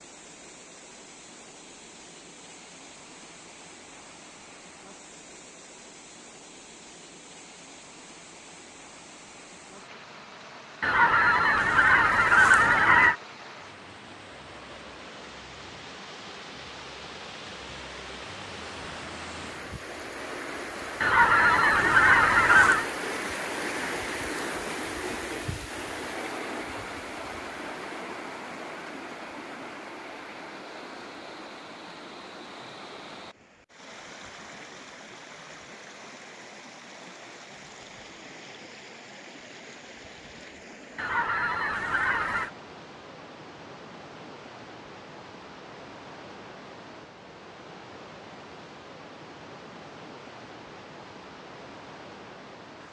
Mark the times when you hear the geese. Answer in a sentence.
You can hear the geese from 10.8 to 13.2 s, from 21.0 to 22.9 s and from 41.0 to 42.5 s.